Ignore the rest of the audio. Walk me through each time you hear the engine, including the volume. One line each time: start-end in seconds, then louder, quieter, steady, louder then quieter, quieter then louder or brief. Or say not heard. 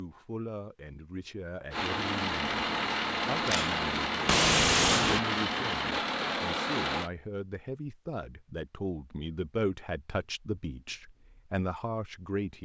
1.7-7.1 steady.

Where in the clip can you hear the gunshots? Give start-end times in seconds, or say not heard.
3.5-5.2.